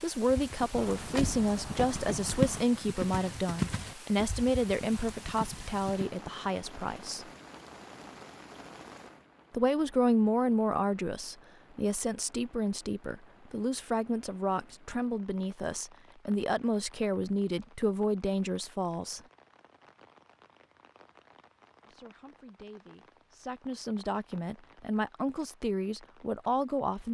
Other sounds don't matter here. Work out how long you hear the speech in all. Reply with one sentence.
The speech can be heard for 22 seconds in total.